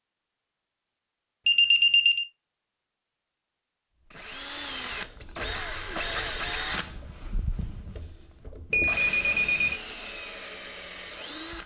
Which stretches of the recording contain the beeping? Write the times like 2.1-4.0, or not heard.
1.4-2.2, 8.7-9.8.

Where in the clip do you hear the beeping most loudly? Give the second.
2 s.